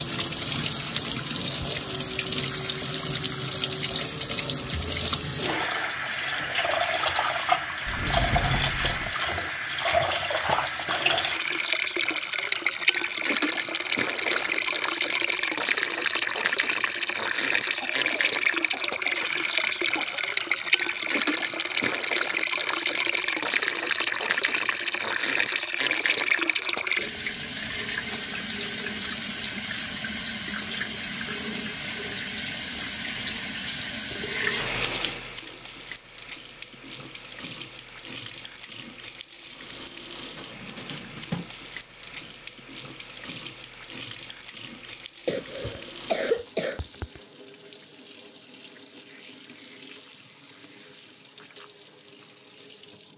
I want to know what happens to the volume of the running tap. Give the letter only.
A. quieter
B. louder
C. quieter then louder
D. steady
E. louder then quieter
A.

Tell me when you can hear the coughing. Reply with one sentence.
The coughing can be heard from 14.2 to 14.8 s, from 17.8 to 20.3 s and from 45.2 to 47.2 s.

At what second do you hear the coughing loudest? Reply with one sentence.
The volume of the coughing peaks at 46 seconds.